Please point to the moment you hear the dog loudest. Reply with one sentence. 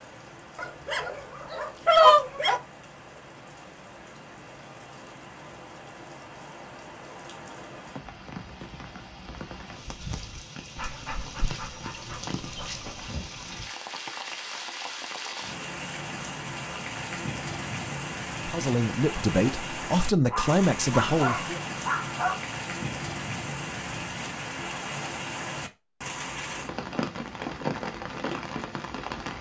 The loudest moment of the dog is at 2 seconds.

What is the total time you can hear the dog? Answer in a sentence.
The dog can be heard for 7 seconds in total.